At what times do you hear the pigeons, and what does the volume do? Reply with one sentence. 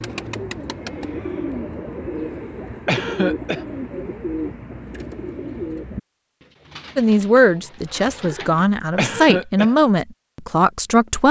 You can hear the pigeons from 0.0 to 8.7 s, getting quieter.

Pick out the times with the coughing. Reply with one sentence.
You can hear the coughing from 2.9 to 3.6 s and from 8.9 to 9.8 s.